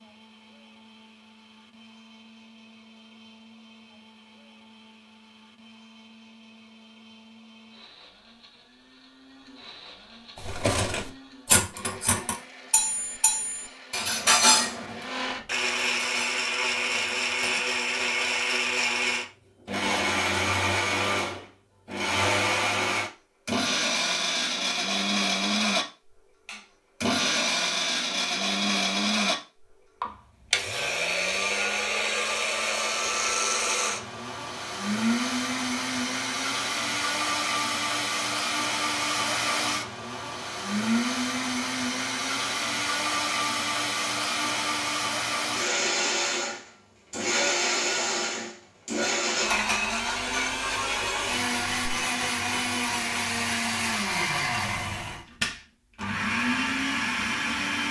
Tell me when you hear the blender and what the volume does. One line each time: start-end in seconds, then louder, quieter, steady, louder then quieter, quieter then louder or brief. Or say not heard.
0.0-57.8 louder.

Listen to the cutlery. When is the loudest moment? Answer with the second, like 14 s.
14 s.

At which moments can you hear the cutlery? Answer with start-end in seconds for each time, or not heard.
10.3-17.6.